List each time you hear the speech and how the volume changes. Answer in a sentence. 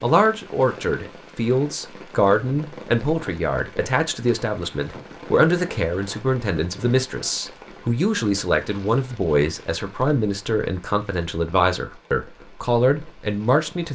The speech can be heard from 0.0 to 13.9 s, at a steady volume.